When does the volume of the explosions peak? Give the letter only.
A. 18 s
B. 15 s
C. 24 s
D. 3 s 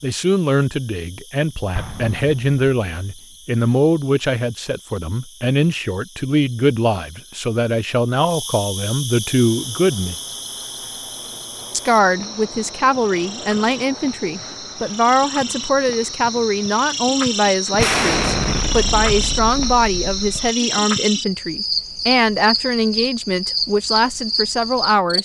A.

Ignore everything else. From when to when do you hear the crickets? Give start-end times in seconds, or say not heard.
0.0-25.2.